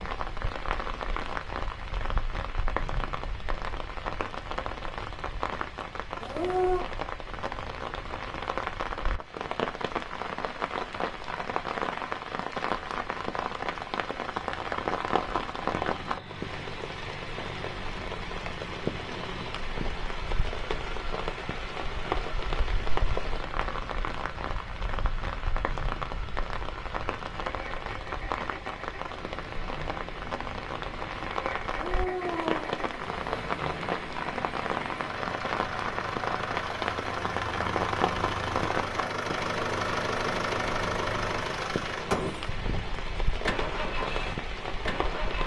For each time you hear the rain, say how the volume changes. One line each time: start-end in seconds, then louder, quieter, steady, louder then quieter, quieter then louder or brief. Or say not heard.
0.0-45.4 steady.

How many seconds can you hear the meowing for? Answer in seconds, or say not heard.
2 s.